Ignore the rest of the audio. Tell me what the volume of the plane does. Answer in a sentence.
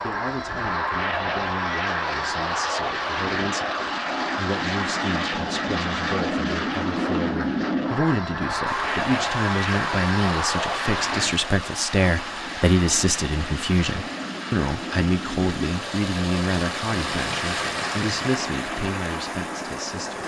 The volume of the plane goes down.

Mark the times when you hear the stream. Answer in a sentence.
The stream can be heard from 8.7 to 20.2 s.